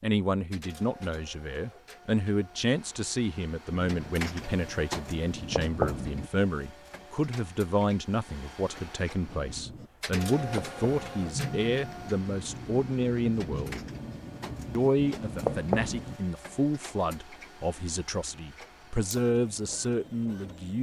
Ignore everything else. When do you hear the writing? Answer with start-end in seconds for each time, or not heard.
3.7-6.3, 9.2-16.2.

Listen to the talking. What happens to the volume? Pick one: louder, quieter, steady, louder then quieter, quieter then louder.
steady.